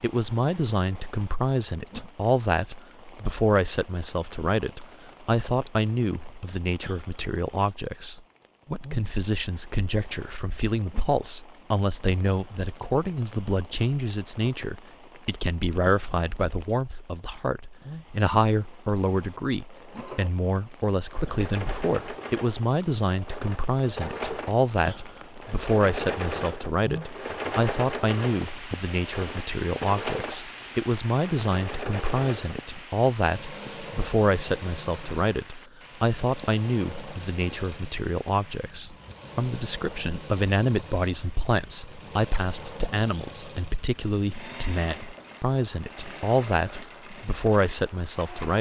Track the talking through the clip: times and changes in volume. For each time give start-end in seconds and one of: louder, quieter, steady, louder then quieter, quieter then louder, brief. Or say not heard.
0.0-48.5 steady.